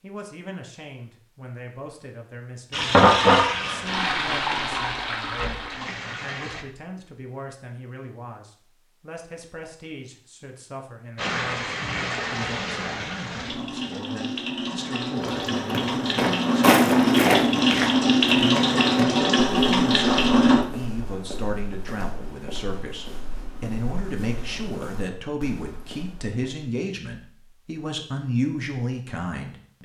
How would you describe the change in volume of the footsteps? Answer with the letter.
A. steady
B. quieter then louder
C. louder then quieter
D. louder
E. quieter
E.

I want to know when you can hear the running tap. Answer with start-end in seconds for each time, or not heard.
2.7-6.7, 11.2-20.6.